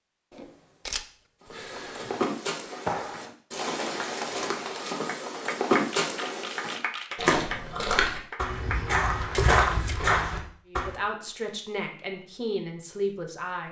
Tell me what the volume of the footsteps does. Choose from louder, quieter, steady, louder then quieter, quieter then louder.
louder.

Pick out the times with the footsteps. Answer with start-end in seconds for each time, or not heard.
1.4-10.9.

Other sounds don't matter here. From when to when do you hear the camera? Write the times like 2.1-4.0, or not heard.
0.3-2.2, 6.0-7.1, 9.3-10.0.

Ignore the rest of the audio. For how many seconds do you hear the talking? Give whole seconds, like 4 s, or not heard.
3 s.